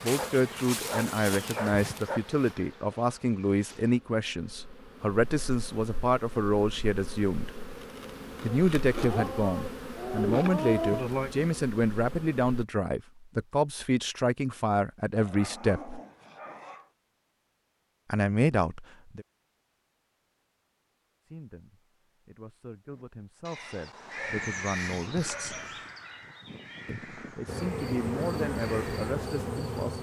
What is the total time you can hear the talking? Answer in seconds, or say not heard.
24 s.